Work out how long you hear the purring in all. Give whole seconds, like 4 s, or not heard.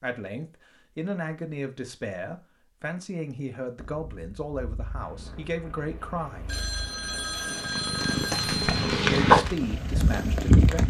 7 s.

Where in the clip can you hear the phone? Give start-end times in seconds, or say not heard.
6.5-8.9.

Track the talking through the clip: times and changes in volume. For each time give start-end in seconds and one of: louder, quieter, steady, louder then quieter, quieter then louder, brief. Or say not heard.
0.0-6.5 steady
8.9-10.8 brief.